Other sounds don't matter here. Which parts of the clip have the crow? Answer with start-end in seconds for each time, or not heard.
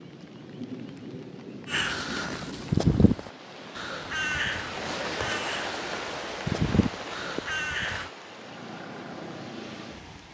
1.6-8.1.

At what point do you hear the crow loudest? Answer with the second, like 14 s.
3 s.